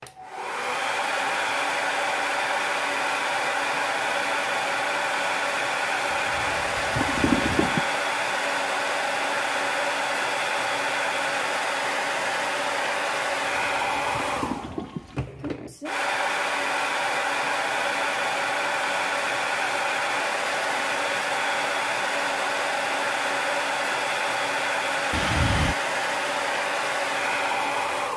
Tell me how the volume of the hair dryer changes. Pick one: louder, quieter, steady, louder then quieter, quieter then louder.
steady.